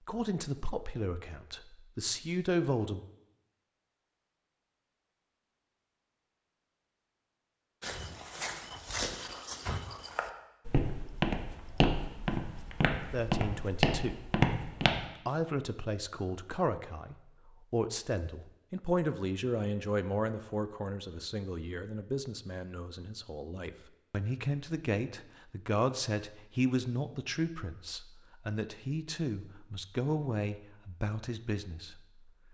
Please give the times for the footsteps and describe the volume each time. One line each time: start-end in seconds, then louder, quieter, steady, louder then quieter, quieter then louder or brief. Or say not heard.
7.8-15.1 louder.